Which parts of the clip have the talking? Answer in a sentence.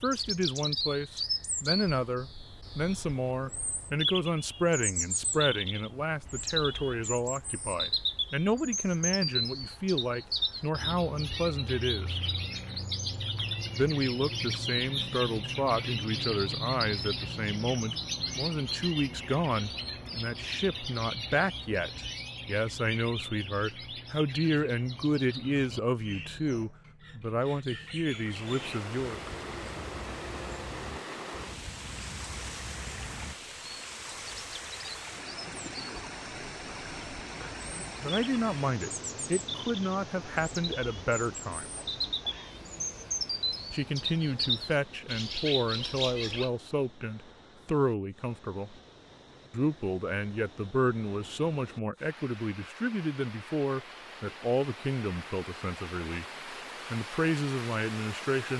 The talking can be heard from 0.0 to 12.1 s, from 13.8 to 29.2 s, from 38.0 to 41.6 s, from 43.7 to 48.8 s, from 49.5 to 56.2 s and from 56.9 to 58.5 s.